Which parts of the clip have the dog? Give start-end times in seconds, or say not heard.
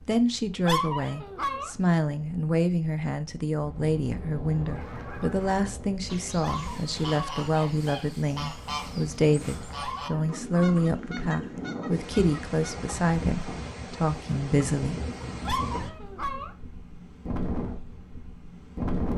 0.7-1.7, 6.4-7.5, 9.8-10.8, 15.4-16.5.